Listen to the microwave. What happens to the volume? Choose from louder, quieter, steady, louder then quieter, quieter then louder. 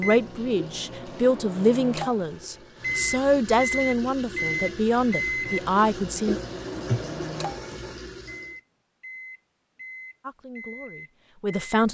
louder then quieter.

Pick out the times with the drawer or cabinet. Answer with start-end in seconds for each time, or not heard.
not heard.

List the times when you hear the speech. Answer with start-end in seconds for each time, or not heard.
0.0-6.4, 10.2-11.8.